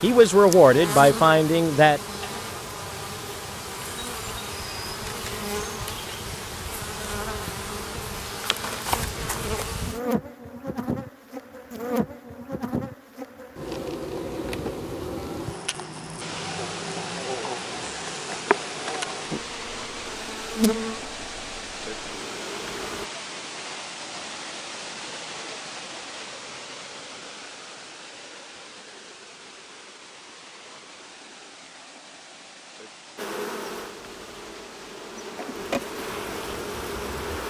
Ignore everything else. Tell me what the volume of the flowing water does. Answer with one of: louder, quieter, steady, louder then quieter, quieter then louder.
quieter.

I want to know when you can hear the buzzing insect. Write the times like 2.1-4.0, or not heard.
0.0-23.1, 33.1-37.4.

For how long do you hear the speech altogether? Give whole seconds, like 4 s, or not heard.
2 s.